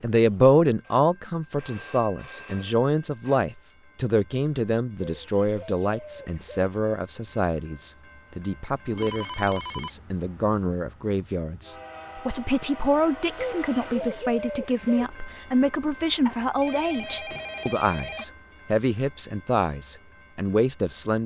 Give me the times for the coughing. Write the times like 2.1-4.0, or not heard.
not heard.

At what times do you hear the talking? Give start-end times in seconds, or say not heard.
0.0-21.2.